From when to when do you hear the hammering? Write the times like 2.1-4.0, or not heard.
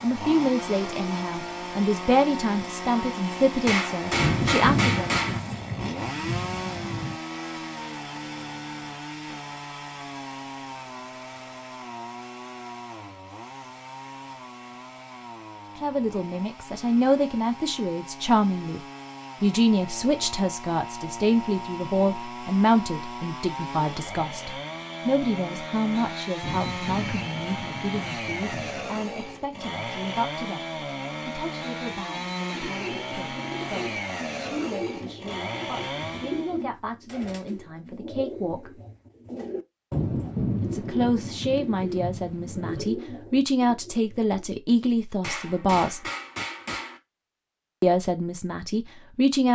3.6-5.4, 45.2-47.0.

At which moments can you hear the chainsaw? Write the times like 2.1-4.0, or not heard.
0.0-36.6.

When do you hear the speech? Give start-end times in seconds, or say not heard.
0.0-5.1, 15.8-18.8, 19.4-38.7, 40.6-46.0, 47.8-49.4.